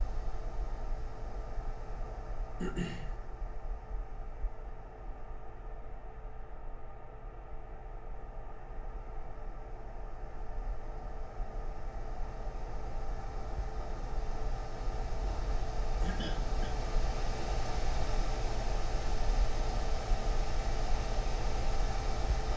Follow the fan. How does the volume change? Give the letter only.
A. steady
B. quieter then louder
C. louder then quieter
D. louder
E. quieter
D.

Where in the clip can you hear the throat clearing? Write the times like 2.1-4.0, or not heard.
2.6-3.1, 16.0-16.7.